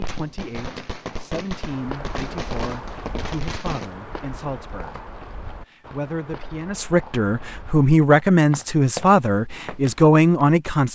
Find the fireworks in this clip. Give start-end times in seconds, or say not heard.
0.0-3.9.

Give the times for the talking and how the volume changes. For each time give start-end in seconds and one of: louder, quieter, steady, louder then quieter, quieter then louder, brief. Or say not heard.
0.0-10.9 louder.